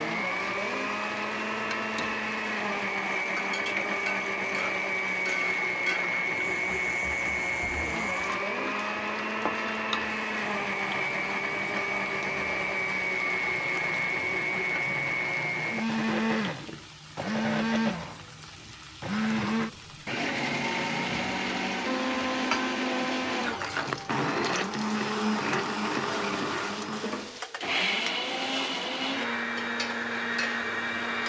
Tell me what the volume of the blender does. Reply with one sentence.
The volume of the blender stays about the same.